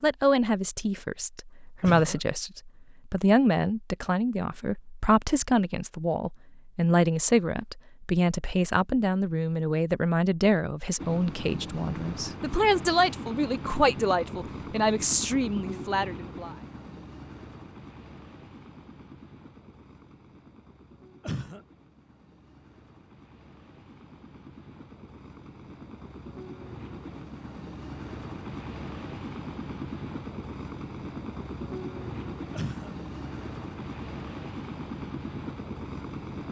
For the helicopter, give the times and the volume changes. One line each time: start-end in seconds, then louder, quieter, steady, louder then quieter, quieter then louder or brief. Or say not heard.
10.9-36.4 quieter then louder.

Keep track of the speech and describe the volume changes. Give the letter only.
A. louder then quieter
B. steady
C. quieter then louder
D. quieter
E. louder
B.